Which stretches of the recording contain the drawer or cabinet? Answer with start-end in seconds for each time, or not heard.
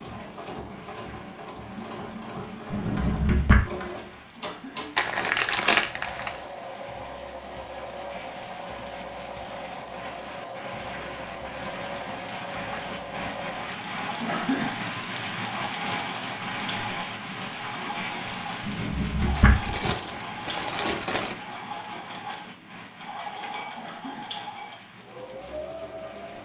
2.7-3.6, 18.6-19.8.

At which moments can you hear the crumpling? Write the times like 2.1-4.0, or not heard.
5.0-6.4, 19.4-21.4.